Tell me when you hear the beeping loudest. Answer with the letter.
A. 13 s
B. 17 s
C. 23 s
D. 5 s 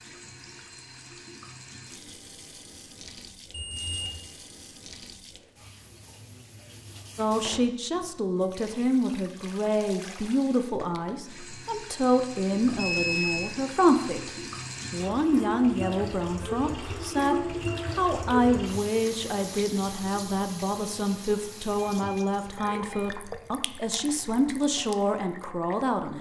A.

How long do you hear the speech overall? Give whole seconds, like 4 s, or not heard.
18 s.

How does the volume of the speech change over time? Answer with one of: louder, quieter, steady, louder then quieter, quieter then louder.
steady.